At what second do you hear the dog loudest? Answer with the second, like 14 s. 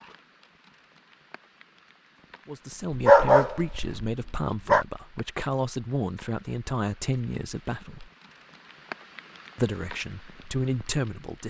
3 s.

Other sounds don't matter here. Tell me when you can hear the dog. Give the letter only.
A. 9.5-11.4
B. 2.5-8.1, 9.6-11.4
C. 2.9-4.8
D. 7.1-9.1
C.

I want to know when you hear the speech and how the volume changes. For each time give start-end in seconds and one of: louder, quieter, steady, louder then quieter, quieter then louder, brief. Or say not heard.
2.5-8.1 steady
9.6-11.4 brief.